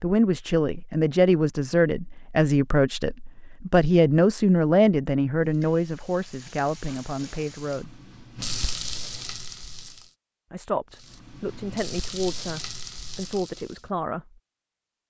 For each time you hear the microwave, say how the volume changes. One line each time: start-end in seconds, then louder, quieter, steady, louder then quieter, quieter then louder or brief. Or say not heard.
not heard.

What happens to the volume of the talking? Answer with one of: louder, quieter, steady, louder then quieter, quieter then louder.
quieter.